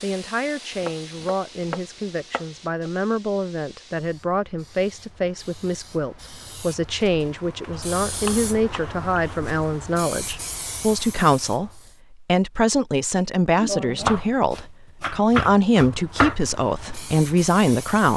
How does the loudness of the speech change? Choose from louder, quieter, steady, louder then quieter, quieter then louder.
louder.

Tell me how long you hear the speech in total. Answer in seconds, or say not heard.
18 s.